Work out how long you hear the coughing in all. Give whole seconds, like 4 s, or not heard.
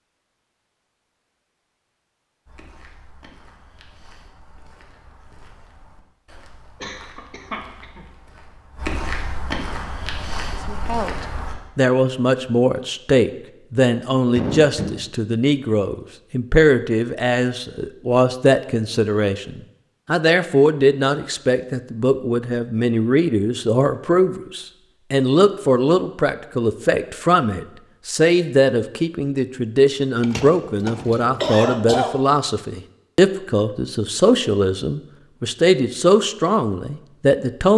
4 s.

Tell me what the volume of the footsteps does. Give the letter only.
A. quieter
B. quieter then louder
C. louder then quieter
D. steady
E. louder
E.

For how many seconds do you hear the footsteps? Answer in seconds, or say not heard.
9 s.